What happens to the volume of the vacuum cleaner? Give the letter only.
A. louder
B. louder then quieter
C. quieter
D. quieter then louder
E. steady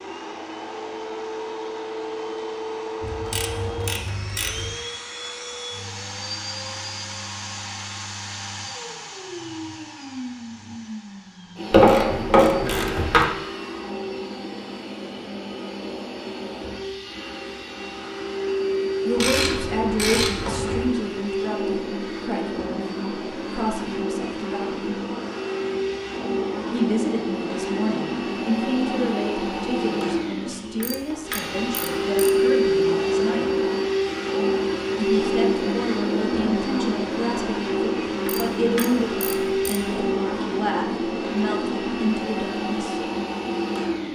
A.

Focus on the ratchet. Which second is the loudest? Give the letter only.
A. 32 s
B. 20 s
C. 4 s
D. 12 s
D.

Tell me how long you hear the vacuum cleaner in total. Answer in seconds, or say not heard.
44 s.